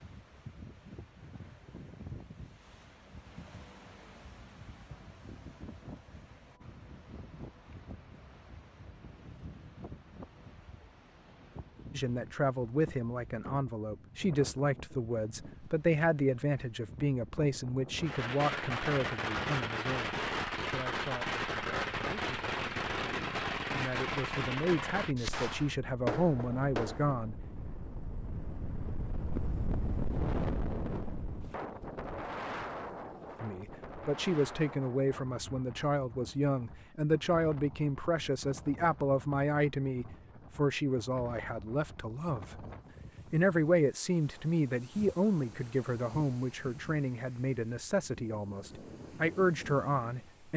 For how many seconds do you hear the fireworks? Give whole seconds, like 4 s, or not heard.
9 s.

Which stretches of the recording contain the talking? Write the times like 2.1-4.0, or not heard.
11.9-27.4, 33.4-42.6, 43.3-50.5.